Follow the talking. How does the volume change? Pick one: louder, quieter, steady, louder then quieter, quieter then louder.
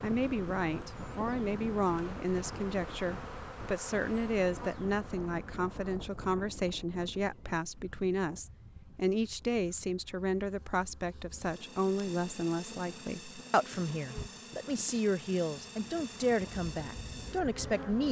steady.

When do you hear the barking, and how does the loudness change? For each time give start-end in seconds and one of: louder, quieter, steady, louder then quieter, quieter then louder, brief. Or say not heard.
not heard.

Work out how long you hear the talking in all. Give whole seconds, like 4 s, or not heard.
18 s.